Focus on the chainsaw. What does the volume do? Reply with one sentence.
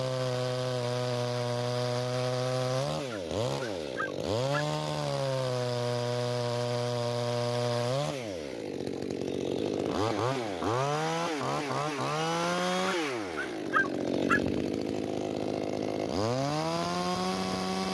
The volume of the chainsaw stays about the same.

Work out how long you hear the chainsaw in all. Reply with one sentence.
The chainsaw can be heard for 18 seconds in total.